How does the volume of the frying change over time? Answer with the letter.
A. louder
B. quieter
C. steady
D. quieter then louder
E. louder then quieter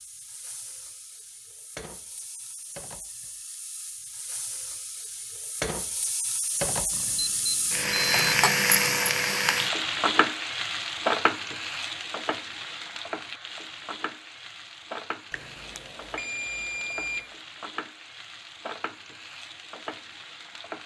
E.